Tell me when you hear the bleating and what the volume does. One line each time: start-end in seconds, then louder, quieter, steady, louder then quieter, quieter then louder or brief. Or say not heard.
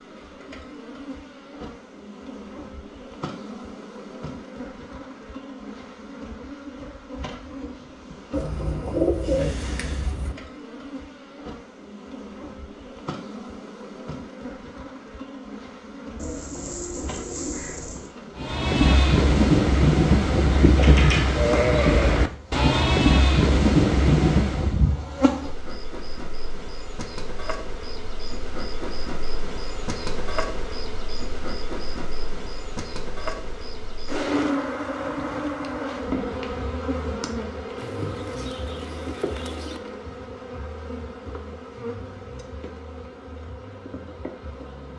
18.4-24.9 steady.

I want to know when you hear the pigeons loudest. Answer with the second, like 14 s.
9 s.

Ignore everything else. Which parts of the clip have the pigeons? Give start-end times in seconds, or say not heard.
8.3-10.3, 16.1-18.1, 37.8-39.8.